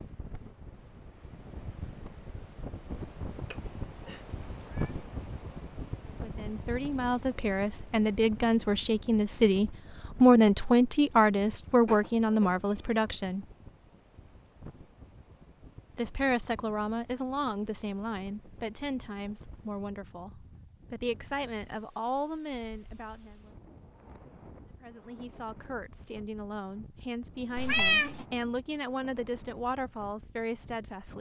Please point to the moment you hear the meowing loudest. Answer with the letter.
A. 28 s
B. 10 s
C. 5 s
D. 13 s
A.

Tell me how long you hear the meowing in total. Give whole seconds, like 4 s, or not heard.
3 s.